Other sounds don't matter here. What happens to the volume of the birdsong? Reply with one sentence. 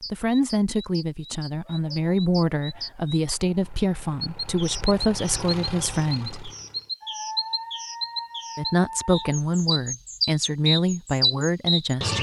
The loudness of the birdsong goes up.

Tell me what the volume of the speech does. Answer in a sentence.
The loudness of the speech stays about the same.